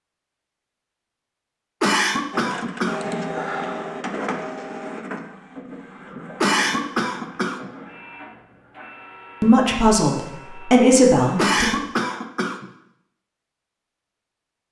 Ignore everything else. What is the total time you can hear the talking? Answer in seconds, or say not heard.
2 s.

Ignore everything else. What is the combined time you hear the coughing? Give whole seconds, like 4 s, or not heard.
4 s.